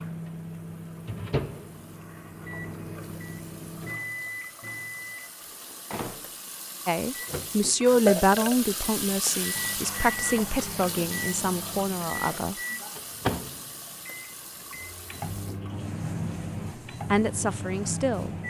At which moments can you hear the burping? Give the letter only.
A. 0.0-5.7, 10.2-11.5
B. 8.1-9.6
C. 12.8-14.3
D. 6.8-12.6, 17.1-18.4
B.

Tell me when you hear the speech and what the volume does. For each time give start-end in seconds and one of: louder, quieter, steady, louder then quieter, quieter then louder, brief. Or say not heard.
6.8-12.6 quieter
17.1-18.4 brief.